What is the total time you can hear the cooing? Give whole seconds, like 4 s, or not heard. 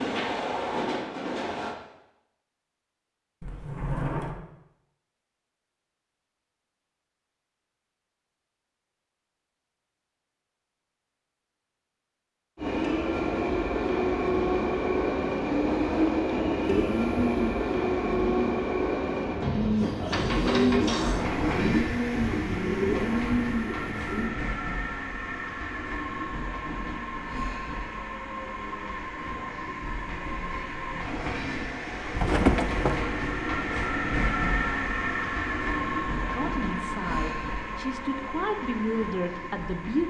8 s.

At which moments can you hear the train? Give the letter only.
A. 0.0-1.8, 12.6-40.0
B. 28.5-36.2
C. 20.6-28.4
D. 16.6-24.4
A.